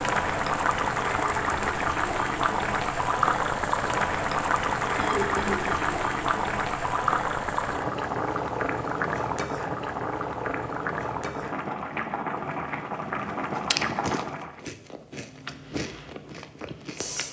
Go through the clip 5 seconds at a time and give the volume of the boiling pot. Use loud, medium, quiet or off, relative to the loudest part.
loud, loud, medium, off.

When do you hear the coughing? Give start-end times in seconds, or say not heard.
5.0-6.0.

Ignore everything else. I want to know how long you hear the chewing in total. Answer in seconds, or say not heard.
4 s.